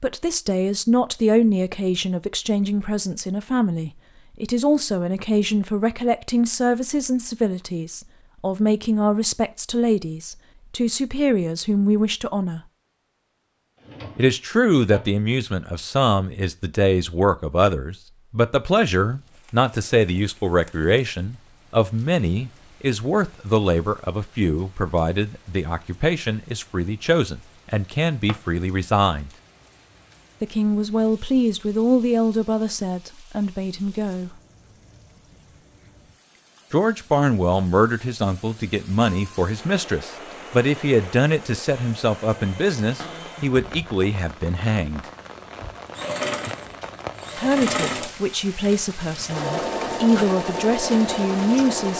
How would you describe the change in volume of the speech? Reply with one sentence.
The volume of the speech stays about the same.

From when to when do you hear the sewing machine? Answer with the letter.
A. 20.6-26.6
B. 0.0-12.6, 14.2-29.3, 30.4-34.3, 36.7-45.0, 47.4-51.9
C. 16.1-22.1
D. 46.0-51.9
D.